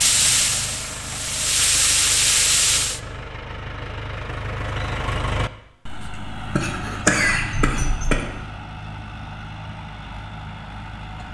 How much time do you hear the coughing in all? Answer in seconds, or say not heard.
2 s.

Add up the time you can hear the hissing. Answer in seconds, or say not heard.
3 s.